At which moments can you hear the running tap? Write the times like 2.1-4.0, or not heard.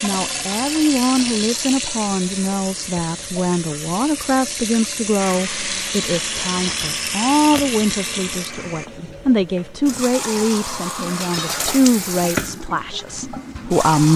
0.0-14.1.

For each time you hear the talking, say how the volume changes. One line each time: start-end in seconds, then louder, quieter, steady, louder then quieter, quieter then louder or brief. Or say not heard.
0.0-14.1 steady.